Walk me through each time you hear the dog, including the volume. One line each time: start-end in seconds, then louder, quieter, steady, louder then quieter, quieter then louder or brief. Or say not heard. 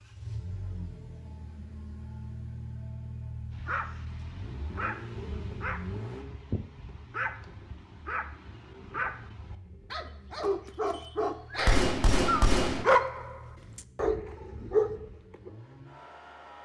3.5-15.5 louder.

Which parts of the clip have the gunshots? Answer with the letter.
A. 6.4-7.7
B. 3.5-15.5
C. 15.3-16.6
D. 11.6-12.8
D.